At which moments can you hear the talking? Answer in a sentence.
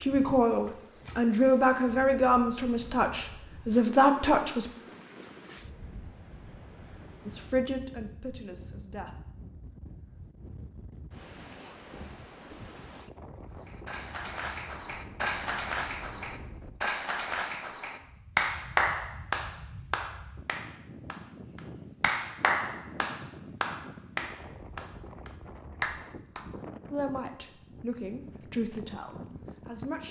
The talking can be heard from 0.0 to 4.7 s, from 7.2 to 9.2 s and from 26.9 to 30.0 s.